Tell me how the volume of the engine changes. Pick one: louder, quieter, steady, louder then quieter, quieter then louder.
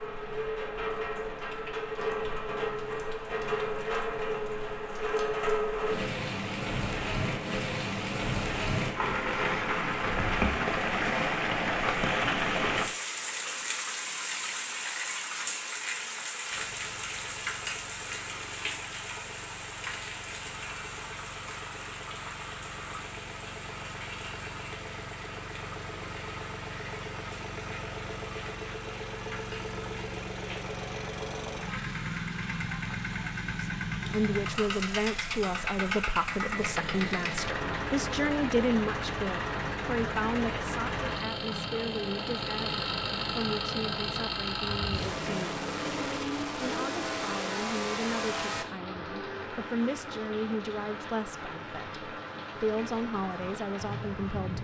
louder.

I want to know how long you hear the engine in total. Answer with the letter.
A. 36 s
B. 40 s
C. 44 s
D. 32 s
D.